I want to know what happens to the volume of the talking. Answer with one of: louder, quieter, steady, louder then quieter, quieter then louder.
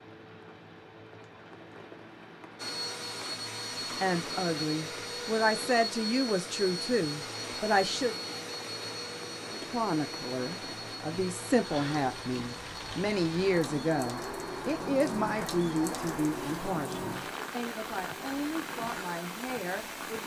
quieter.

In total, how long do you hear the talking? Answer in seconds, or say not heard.
15 s.